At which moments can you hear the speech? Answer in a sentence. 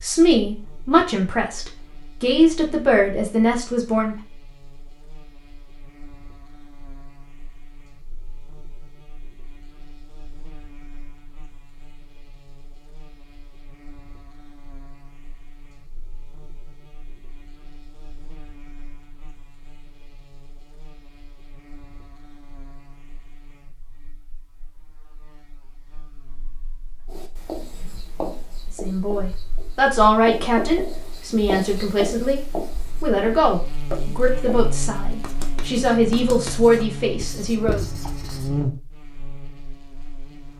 You can hear the speech from 0.0 to 4.2 s and from 28.8 to 37.9 s.